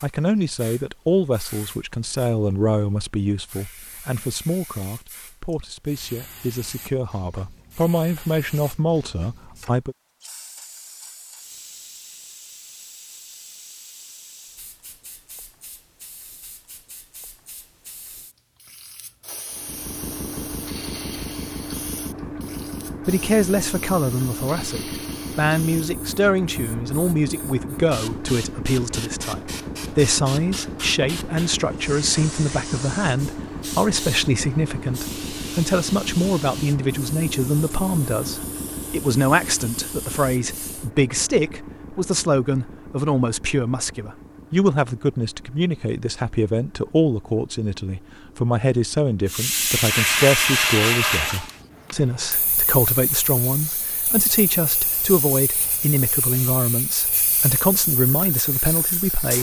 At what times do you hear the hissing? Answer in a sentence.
The hissing can be heard from 0.0 to 40.9 s and from 49.2 to 59.3 s.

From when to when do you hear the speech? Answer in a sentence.
The speech can be heard from 0.0 to 9.9 s and from 23.1 to 59.3 s.